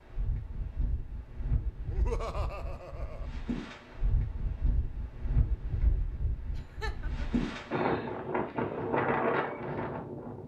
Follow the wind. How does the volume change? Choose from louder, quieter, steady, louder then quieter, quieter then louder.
louder.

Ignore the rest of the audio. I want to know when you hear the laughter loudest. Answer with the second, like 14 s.
2 s.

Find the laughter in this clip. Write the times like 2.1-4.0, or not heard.
1.9-3.3, 6.5-7.3.